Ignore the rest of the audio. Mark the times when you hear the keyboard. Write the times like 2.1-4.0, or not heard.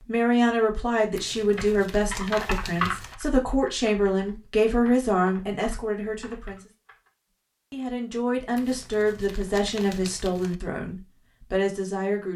1.6-7.1.